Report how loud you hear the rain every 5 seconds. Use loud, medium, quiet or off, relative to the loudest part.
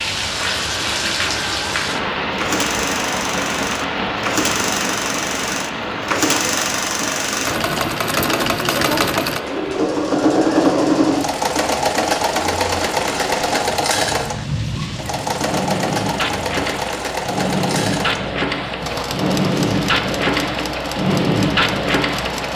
loud, medium, medium, loud, loud.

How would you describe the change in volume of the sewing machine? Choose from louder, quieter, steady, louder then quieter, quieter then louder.
louder then quieter.